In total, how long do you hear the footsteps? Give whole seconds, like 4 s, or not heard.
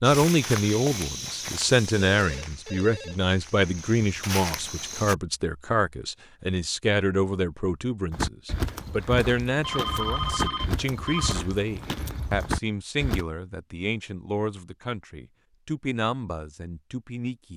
10 s.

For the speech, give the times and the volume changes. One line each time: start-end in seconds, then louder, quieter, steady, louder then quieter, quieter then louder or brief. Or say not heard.
0.0-17.5 quieter.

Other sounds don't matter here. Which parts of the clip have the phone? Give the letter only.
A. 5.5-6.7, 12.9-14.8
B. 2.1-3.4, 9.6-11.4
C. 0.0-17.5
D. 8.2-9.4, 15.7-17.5
B.